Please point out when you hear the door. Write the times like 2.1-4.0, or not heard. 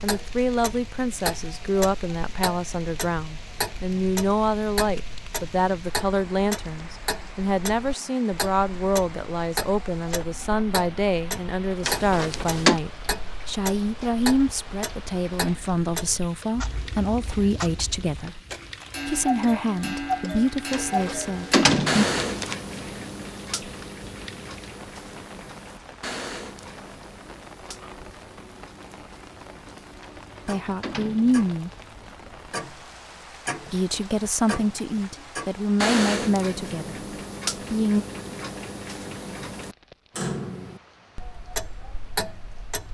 11.8-12.8, 20.7-22.6, 30.0-31.9.